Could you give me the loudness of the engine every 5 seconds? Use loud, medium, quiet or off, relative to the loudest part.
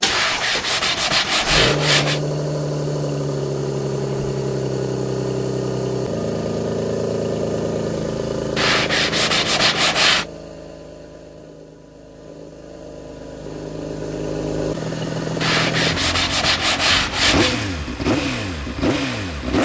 loud, loud, medium, loud.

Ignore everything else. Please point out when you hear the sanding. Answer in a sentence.
You can hear the sanding from 0.1 to 2.2 s, from 8.6 to 10.2 s and from 15.4 to 17.6 s.